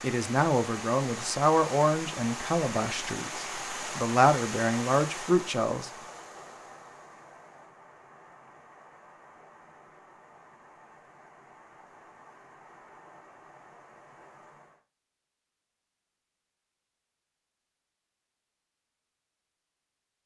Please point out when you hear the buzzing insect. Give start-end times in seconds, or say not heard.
not heard.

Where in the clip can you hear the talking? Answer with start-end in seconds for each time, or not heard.
0.0-5.9.